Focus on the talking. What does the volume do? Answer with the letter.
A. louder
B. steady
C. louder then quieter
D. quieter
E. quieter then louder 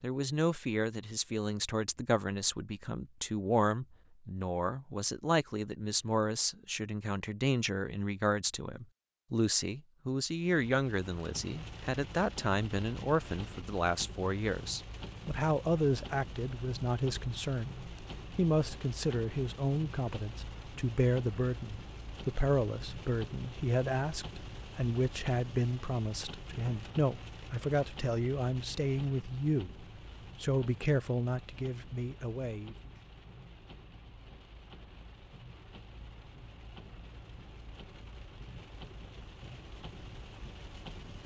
B.